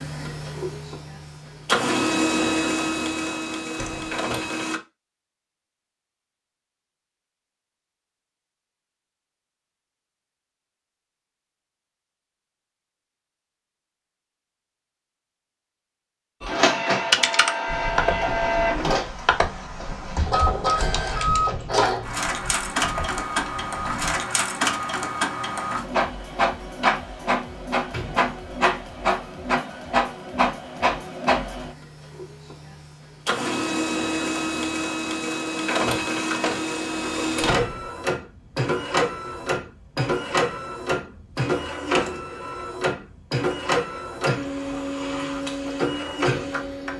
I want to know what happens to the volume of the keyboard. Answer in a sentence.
The loudness of the keyboard goes down.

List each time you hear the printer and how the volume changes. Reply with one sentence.
The printer can be heard from 0.0 to 4.8 s, getting louder then quieter; and from 16.4 to 46.9 s, at a steady volume.